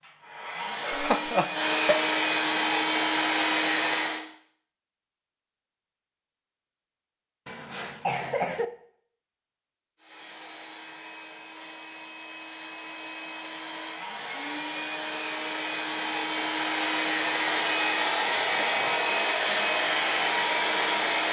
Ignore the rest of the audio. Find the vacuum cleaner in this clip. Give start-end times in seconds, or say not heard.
0.0-4.2, 9.9-21.2.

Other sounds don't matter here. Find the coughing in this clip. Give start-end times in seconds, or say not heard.
0.8-2.0, 7.5-8.7, 18.6-19.1.